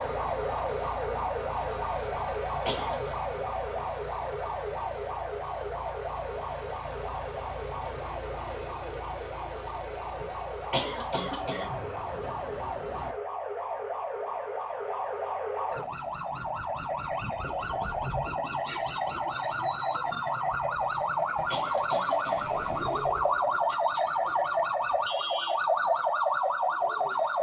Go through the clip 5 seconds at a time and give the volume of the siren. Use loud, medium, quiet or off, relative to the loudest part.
medium, medium, medium, medium, loud, loud.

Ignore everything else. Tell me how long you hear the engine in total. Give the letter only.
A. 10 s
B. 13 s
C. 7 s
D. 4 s
B.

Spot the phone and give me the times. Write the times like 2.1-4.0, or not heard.
not heard.